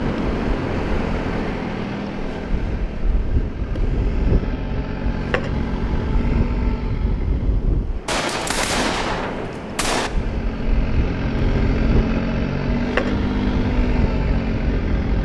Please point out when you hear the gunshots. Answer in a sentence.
You can hear the gunshots from 8.1 to 10.1 s.